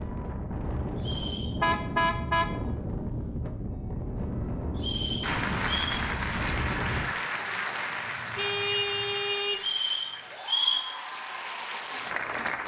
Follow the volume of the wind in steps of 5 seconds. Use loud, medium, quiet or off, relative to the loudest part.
loud, loud, off.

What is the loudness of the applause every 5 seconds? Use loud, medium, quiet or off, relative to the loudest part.
off, loud, loud.